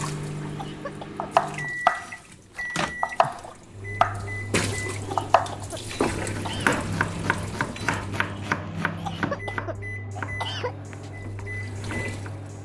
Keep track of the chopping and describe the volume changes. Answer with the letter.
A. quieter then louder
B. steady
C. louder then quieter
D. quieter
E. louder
D.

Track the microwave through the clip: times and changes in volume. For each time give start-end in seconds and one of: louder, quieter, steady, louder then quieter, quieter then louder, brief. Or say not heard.
0.0-12.6 steady.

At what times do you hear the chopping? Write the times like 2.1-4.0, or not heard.
1.1-12.2.